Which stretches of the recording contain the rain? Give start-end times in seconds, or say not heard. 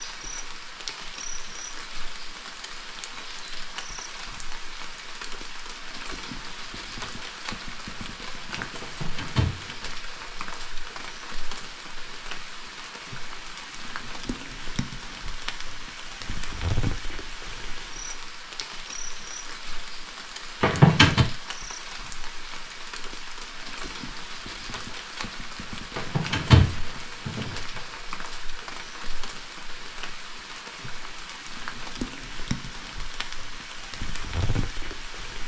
0.0-35.4.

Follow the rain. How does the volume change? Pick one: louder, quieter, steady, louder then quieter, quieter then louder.
steady.